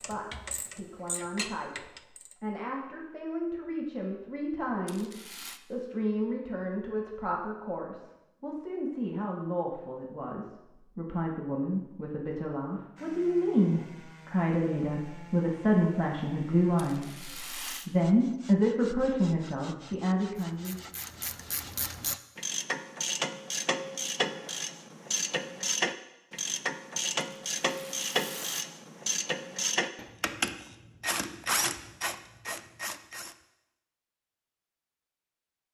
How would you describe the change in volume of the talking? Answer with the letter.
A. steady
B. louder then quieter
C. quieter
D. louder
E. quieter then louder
D.